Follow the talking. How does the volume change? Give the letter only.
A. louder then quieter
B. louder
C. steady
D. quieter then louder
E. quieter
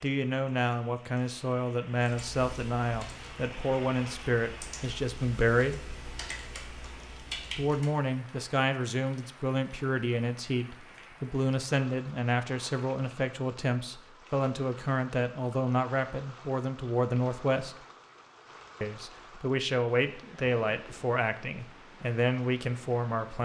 C.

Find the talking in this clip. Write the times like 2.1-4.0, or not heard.
0.0-5.8, 7.5-17.8, 18.8-23.4.